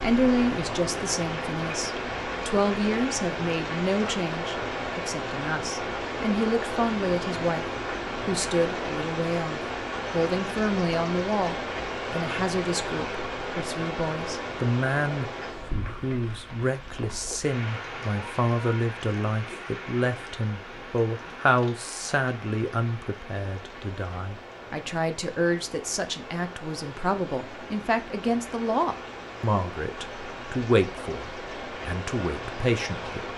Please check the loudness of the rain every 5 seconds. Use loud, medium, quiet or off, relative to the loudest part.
loud, loud, loud, medium, medium, medium, medium.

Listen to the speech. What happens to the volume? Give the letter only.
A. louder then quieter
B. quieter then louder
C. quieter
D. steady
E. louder
D.